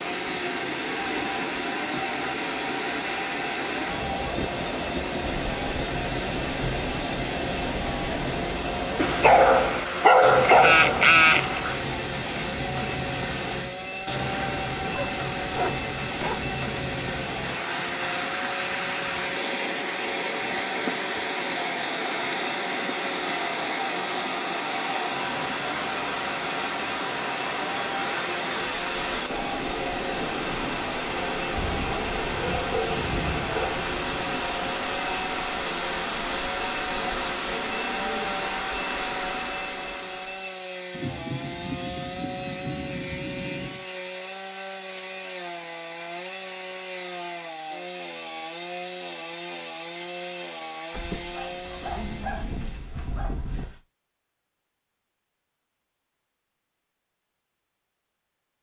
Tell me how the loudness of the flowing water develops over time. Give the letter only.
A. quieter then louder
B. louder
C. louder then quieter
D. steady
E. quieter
D.